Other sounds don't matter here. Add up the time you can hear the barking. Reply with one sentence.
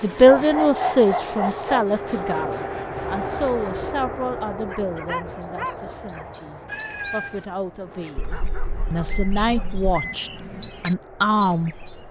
The barking can be heard for 5 seconds in total.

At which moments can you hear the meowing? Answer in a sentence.
You can hear the meowing from 6.7 to 7.5 s.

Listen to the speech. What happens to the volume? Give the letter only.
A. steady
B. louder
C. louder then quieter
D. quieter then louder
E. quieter
D.